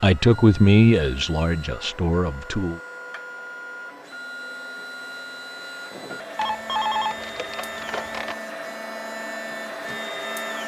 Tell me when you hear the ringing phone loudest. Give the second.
7 s.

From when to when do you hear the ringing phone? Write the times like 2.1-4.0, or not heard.
6.3-8.3.